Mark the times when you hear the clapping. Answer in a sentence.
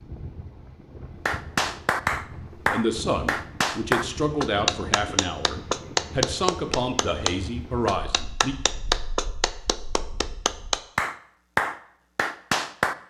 The clapping can be heard from 1.2 to 12.9 s.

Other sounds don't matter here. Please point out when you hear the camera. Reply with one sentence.
The camera can't be heard in this clip.